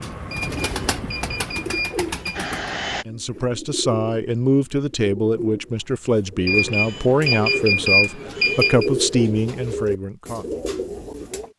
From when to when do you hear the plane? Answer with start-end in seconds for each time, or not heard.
0.0-3.0.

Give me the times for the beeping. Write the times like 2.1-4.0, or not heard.
0.3-2.5, 6.5-8.9.